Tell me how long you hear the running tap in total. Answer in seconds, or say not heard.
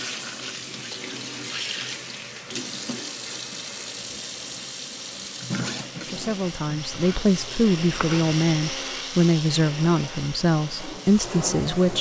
12 s.